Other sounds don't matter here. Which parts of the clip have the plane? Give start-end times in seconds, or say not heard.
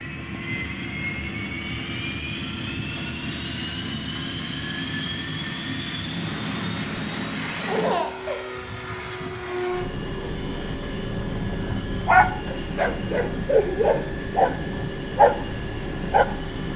0.0-16.7.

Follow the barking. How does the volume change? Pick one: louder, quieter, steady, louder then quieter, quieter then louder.
louder.